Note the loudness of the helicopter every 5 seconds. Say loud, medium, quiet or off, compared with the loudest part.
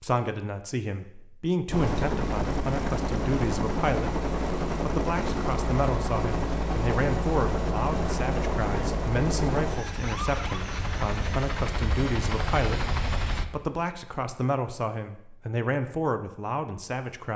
loud, loud, loud, off.